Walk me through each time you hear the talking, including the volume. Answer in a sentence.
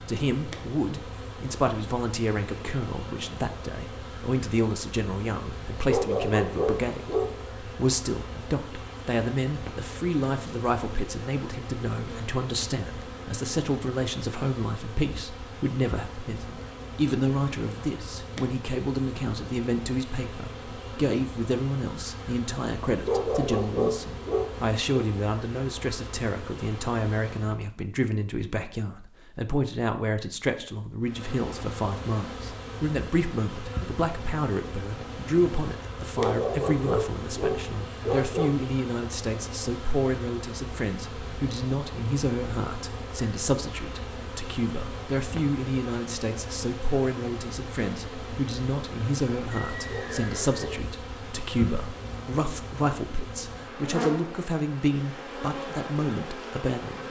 You can hear the talking from 0.1 to 57.0 s, at a steady volume.